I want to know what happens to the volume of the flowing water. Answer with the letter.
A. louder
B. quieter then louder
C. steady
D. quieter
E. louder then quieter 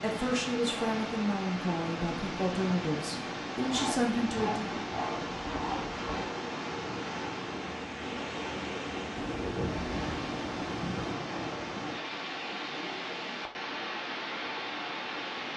C.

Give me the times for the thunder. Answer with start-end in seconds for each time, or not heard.
9.2-11.2.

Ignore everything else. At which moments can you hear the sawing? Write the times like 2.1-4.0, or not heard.
3.6-6.3.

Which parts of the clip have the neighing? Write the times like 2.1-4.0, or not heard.
not heard.